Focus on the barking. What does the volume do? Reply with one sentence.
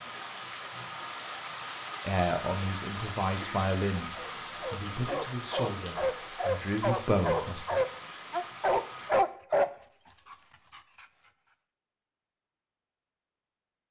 The volume of the barking goes up.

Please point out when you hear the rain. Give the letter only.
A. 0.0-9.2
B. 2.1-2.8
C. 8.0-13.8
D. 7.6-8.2
A.